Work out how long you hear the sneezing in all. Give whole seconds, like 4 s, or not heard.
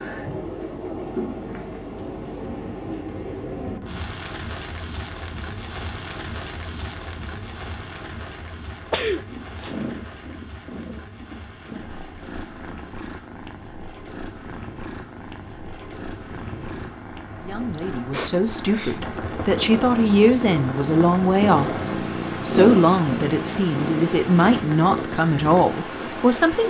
2 s.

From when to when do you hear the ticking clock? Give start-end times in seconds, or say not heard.
not heard.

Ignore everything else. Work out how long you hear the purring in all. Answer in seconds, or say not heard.
17 s.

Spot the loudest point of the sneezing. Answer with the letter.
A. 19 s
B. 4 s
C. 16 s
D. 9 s
D.